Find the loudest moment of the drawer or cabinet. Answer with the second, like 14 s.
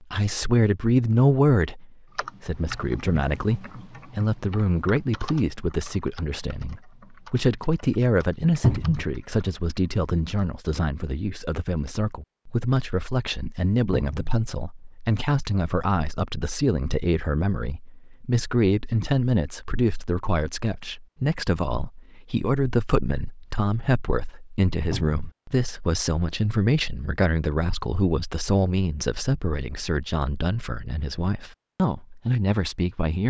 9 s.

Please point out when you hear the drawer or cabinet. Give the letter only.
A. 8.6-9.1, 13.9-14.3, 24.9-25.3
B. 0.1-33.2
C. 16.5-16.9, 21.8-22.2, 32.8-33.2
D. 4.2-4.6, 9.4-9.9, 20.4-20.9
A.